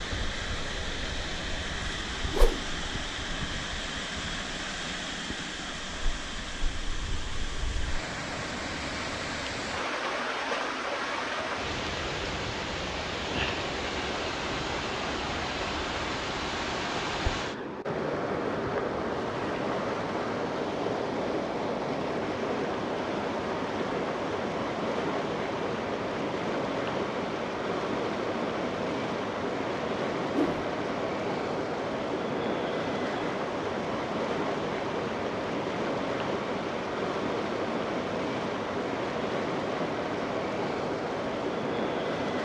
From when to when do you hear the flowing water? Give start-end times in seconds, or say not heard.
0.0-42.3.